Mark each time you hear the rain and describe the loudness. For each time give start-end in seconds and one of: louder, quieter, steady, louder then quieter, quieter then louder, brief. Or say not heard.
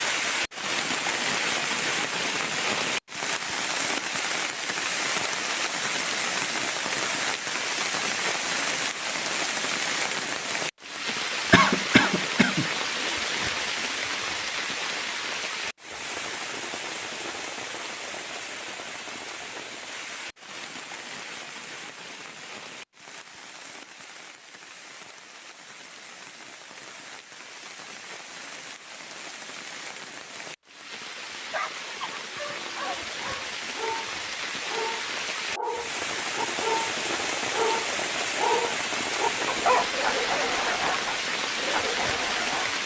0.0-42.8 quieter then louder.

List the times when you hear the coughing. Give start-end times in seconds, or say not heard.
11.5-12.7.